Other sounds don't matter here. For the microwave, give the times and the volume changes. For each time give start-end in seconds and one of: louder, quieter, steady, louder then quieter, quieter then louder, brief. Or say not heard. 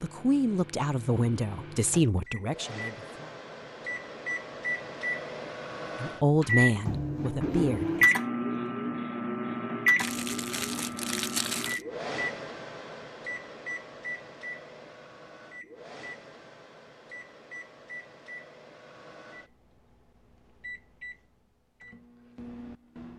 0.0-23.1 louder then quieter.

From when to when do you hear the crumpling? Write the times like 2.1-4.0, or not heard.
9.9-11.8.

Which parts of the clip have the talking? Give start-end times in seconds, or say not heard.
0.0-3.4, 6.0-8.2.